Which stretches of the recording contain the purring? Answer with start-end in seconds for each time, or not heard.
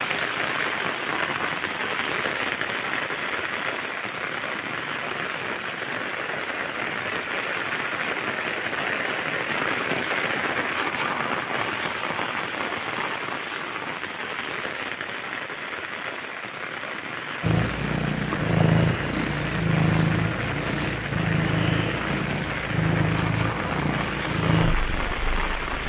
17.4-25.8.